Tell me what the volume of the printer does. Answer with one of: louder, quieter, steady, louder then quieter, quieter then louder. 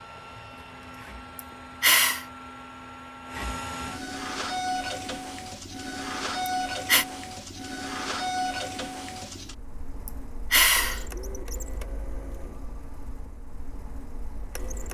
louder then quieter.